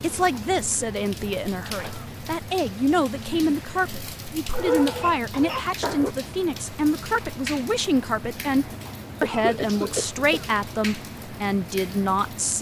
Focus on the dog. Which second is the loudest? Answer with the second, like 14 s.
5 s.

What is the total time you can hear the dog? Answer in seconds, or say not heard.
2 s.